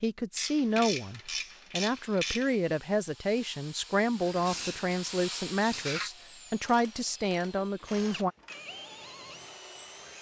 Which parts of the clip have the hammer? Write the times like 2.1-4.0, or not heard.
not heard.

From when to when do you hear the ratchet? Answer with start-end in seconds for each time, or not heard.
0.3-2.5, 6.6-8.7.